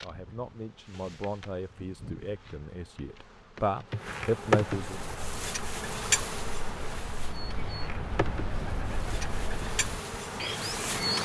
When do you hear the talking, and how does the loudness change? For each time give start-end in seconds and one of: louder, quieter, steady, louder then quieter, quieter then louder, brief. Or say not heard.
0.0-5.0 louder.